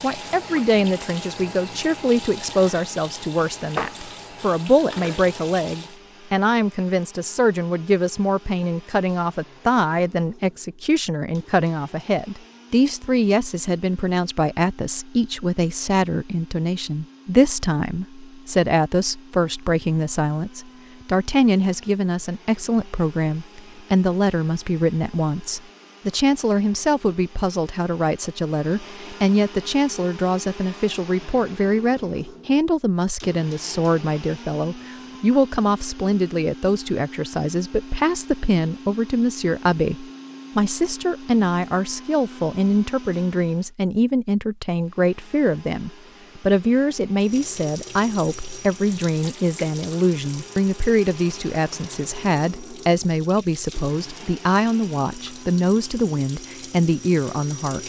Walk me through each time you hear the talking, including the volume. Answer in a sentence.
The talking can be heard from 0.0 to 57.8 s, at a steady volume.